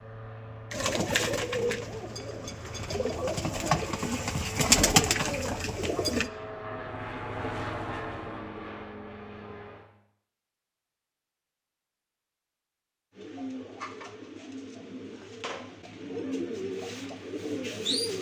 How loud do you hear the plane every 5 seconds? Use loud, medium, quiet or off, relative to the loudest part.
medium, loud, off, off.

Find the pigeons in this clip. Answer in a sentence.
The pigeons can be heard from 0.7 to 6.3 s and from 13.2 to 18.1 s.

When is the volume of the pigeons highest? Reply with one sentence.
The volume of the pigeons peaks at 5 seconds.